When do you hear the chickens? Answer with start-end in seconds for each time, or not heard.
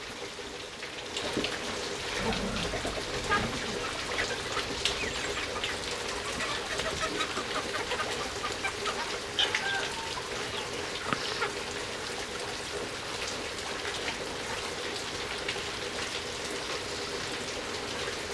2.0-11.6.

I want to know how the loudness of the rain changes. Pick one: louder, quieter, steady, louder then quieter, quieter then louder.
steady.